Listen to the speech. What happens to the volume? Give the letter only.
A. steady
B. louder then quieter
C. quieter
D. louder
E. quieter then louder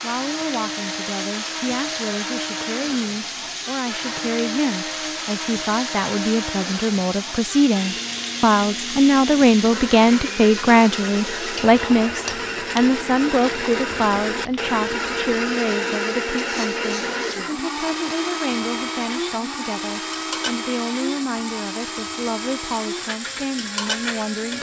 B.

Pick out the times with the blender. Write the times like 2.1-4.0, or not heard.
0.0-24.5.